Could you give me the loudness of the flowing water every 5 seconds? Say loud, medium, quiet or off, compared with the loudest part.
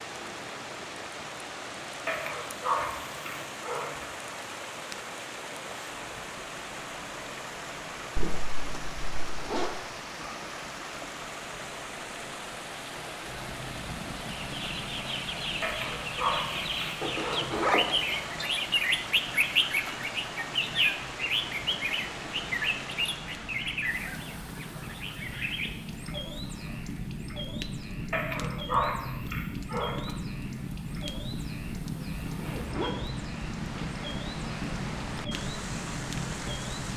loud, loud, loud, loud, loud, quiet, medium, loud.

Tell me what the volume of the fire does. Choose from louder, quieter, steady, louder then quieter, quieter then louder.
louder.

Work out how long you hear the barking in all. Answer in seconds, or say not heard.
6 s.